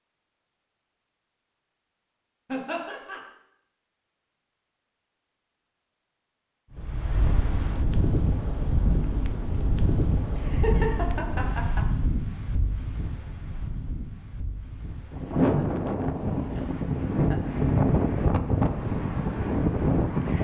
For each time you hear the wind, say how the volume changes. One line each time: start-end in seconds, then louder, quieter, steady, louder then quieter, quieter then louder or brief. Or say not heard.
6.7-20.3 quieter then louder.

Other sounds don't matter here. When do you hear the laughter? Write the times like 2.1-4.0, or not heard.
2.5-3.2, 10.3-11.8, 15.3-17.6.